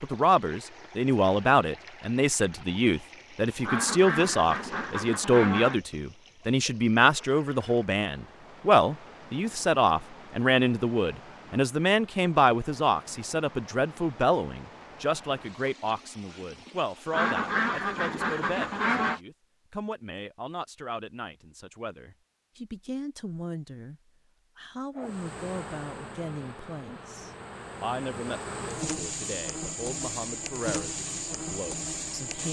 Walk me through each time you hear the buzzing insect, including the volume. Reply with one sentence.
The buzzing insect can be heard from 24.9 to 32.4 s, getting louder.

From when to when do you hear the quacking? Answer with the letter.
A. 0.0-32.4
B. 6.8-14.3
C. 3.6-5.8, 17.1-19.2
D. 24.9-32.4
C.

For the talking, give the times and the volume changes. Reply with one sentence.
The talking can be heard from 0.0 to 32.4 s, getting quieter.